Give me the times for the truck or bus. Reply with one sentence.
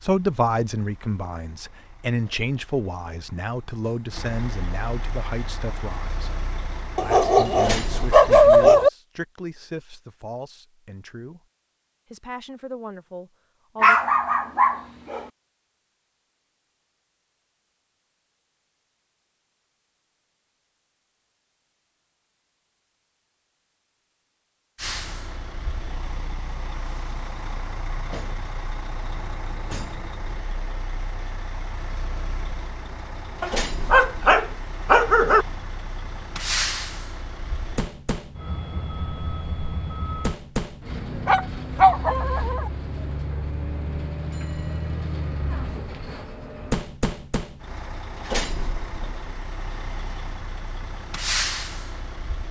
You can hear the truck or bus from 0.0 to 8.8 s and from 24.8 to 52.4 s.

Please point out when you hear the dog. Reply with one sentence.
You can hear the dog from 7.0 to 8.9 s, from 13.8 to 15.2 s, from 33.4 to 35.5 s and from 41.2 to 42.7 s.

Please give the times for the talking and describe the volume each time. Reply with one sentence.
You can hear the talking from 0.0 to 6.4 s, getting quieter; from 7.0 to 11.4 s, getting quieter; and briefly from 12.1 to 14.0 s.